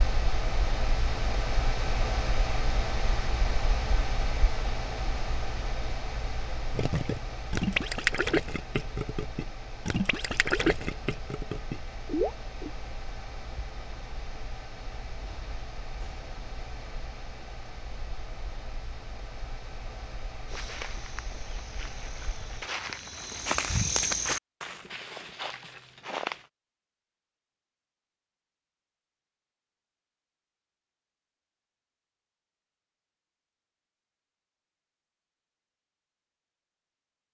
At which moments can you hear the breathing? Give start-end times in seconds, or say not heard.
not heard.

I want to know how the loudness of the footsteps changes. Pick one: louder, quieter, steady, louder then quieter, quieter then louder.
louder then quieter.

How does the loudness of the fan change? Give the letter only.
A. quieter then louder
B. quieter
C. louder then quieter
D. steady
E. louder
B.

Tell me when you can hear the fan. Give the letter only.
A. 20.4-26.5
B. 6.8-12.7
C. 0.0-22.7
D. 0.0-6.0
C.